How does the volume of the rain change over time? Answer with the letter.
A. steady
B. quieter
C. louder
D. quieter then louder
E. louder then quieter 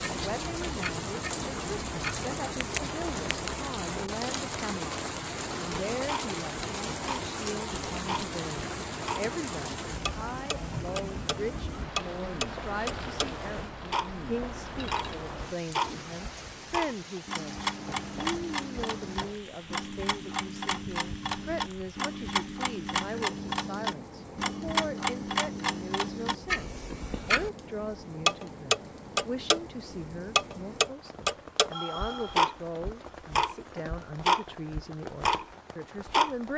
B.